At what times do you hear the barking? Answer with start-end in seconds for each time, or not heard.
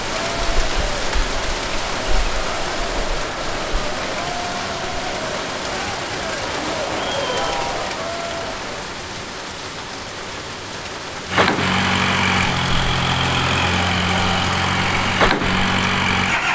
not heard.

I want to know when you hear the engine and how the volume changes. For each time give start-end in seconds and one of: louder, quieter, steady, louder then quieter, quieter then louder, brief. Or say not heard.
11.2-16.5 steady.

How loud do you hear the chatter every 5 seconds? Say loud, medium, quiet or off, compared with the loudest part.
loud, loud, off, off.